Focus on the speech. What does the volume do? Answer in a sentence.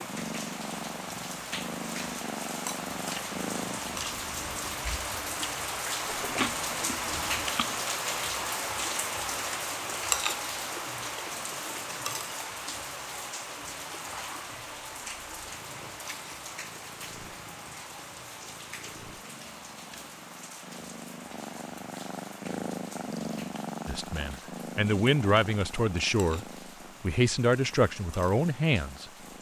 The loudness of the speech stays about the same.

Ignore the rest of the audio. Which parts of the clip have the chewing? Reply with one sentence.
The chewing can be heard from 6.0 to 7.8 s.